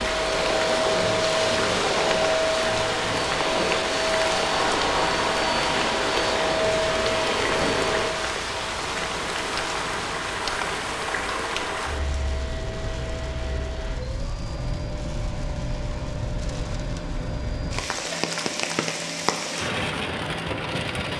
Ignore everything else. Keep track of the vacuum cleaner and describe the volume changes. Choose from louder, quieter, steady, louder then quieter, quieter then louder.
quieter.